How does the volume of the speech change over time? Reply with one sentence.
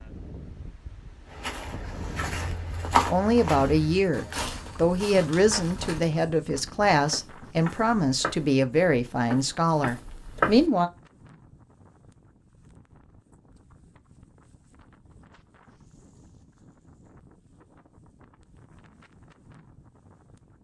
The volume of the speech stays about the same.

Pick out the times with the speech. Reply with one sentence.
The speech can be heard from 3.0 to 10.9 s.